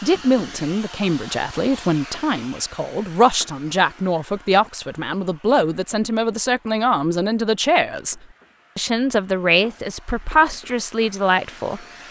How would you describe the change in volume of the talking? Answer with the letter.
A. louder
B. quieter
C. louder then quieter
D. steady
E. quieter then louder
D.